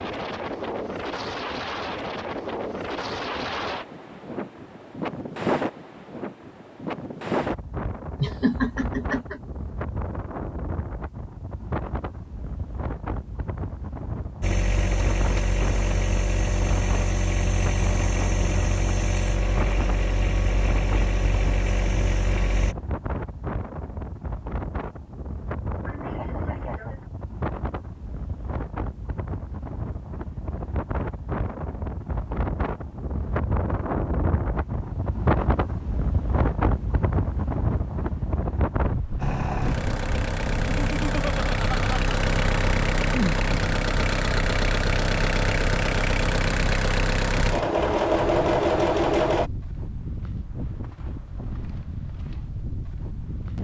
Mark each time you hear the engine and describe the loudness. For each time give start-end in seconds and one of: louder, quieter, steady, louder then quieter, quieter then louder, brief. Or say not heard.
14.4-22.8 steady
39.1-49.5 louder.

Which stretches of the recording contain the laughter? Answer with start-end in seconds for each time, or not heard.
8.2-9.4, 25.9-27.0, 40.8-42.2.